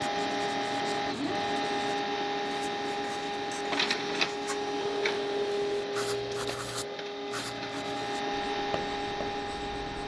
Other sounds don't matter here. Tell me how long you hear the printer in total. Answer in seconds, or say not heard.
10 s.